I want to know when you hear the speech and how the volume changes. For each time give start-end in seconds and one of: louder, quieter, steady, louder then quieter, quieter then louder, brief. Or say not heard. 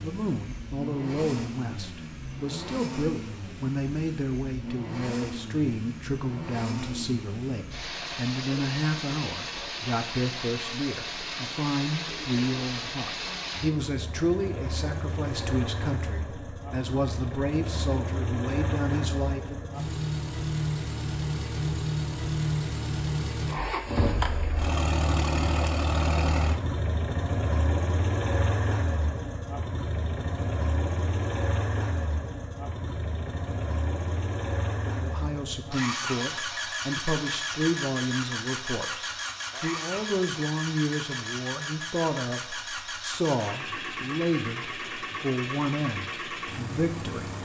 0.0-19.7 steady
34.9-47.4 steady.